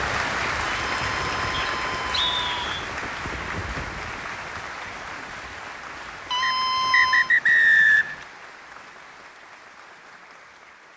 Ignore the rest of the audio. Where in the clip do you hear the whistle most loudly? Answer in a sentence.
The loudest moment of the whistle is at 8 seconds.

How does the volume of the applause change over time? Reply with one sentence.
The loudness of the applause goes down.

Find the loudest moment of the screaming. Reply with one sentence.
The volume of the screaming peaks at 7 seconds.